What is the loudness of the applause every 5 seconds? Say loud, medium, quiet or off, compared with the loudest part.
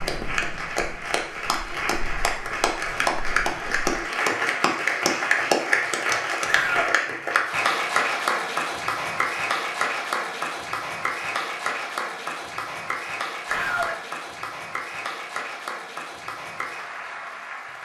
loud, loud, medium, medium.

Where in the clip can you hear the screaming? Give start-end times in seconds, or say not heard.
6.5-7.0, 13.4-14.0.